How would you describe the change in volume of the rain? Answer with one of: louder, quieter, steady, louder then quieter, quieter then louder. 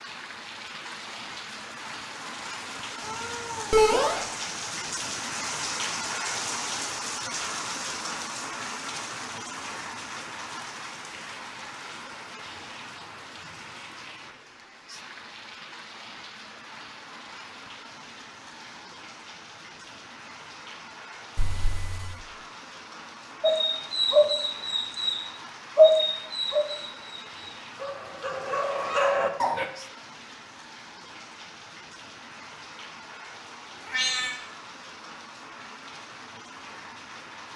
quieter.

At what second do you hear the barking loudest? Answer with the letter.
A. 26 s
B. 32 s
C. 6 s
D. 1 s
A.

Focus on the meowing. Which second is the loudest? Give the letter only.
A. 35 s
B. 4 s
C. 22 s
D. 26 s
B.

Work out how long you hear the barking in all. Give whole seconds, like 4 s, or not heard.
6 s.